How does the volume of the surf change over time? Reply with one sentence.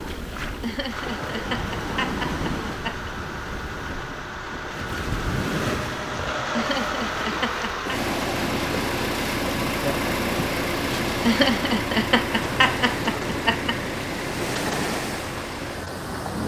The loudness of the surf stays about the same.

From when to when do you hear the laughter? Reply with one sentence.
The laughter can be heard from 0.6 to 3.1 s, from 6.5 to 8.0 s and from 11.2 to 13.8 s.